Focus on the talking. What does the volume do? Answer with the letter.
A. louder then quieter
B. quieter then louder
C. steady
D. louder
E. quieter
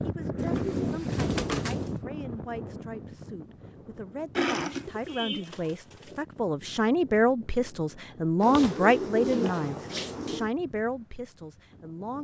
A.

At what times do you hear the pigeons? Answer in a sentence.
You can hear the pigeons from 0.3 to 1.9 s, from 4.3 to 6.2 s and from 8.4 to 10.5 s.